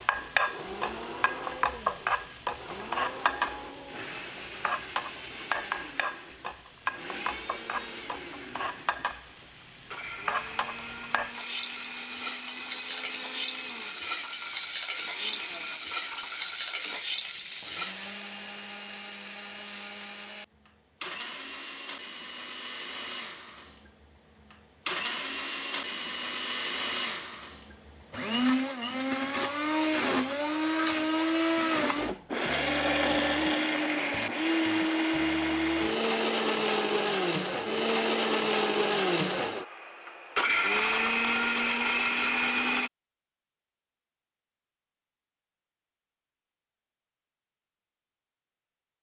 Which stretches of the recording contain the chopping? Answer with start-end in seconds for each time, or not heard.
not heard.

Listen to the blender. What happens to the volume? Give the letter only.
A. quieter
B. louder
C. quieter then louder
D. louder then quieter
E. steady
B.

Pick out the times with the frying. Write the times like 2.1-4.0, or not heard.
0.0-18.3.